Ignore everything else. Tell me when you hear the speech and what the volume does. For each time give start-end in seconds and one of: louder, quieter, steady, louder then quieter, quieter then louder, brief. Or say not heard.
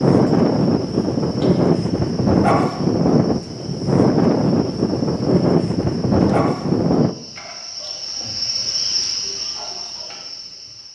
not heard.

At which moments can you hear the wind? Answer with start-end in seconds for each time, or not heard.
0.0-7.2.